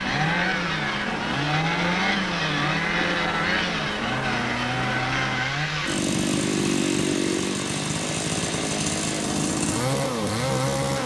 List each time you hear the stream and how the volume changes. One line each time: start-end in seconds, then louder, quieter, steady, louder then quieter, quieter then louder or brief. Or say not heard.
0.0-11.0 steady.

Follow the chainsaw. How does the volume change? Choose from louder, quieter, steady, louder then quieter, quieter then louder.
steady.